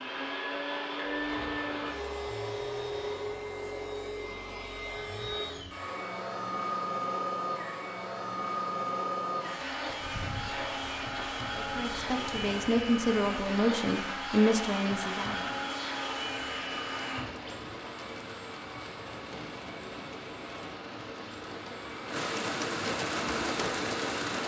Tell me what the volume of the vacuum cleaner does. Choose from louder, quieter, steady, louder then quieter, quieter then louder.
quieter.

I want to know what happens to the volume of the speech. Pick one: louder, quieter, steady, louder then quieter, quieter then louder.
louder then quieter.